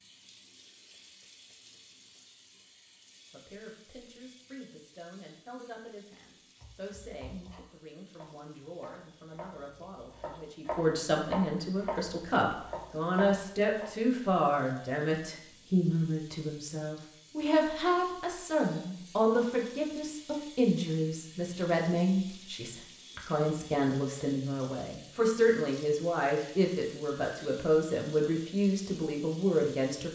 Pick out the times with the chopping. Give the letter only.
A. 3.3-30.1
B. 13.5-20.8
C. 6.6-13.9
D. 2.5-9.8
C.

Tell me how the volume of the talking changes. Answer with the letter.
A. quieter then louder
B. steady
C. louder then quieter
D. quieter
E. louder
E.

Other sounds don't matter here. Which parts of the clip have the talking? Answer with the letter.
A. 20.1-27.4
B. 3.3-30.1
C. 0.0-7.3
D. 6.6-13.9
B.